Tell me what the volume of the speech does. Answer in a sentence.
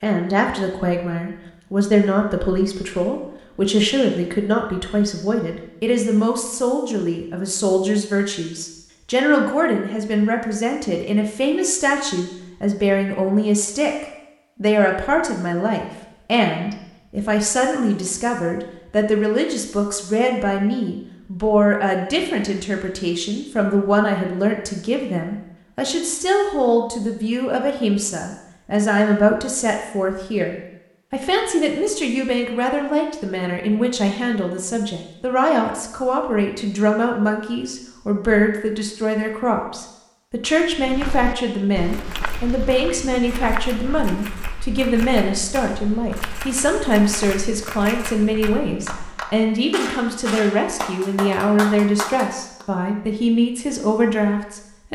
The volume of the speech stays about the same.